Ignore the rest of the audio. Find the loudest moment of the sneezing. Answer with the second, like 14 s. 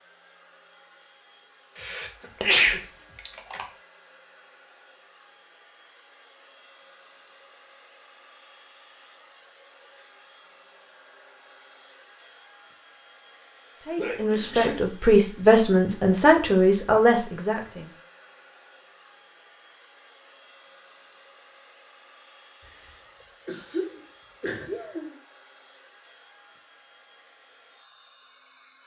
3 s.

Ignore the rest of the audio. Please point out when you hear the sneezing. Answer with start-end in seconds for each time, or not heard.
1.8-3.6, 13.9-14.8, 23.4-25.1.